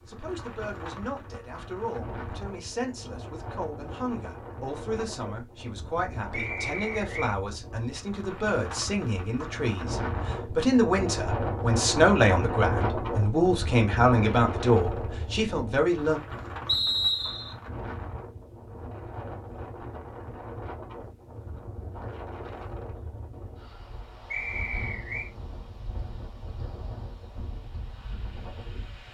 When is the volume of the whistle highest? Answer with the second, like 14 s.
17 s.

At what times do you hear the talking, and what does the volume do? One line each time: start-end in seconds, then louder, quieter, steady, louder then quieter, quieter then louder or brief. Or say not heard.
0.1-16.2 louder.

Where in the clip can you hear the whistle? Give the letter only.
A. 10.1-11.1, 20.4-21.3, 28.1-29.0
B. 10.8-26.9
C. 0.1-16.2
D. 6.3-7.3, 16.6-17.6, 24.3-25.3
D.